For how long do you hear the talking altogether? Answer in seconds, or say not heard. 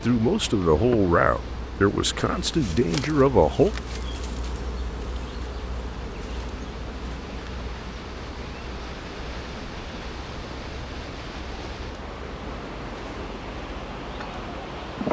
4 s.